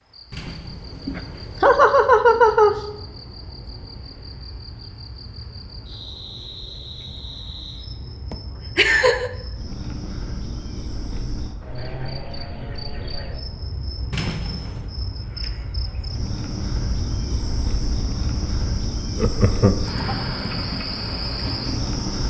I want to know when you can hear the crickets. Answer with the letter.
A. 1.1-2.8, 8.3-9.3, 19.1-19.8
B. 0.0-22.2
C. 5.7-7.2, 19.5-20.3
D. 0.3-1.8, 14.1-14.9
B.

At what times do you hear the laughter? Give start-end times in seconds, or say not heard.
1.1-2.8, 8.3-9.3, 19.1-19.8.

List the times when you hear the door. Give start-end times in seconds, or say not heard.
0.3-1.8, 14.1-14.9.